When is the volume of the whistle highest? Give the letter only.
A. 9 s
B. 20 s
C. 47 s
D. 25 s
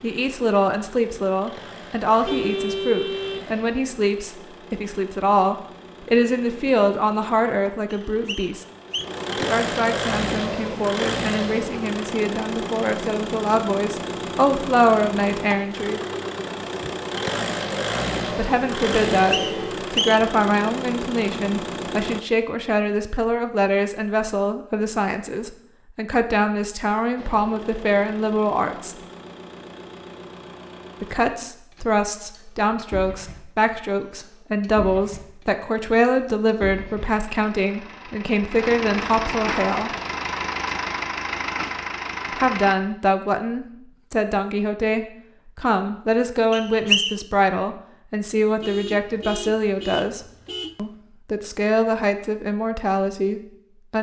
C.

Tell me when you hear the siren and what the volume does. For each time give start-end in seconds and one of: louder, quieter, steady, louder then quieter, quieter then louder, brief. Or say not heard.
not heard.